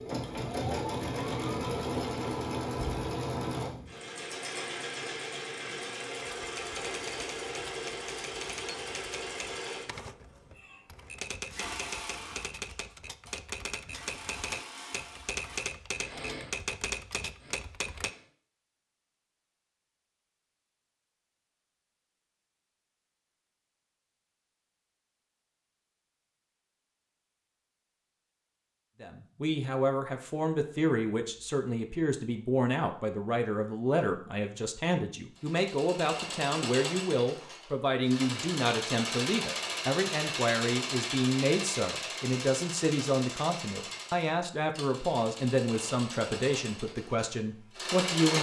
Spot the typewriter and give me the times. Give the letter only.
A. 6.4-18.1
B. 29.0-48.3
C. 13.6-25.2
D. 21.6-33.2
A.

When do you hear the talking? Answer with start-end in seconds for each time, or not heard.
29.0-48.3.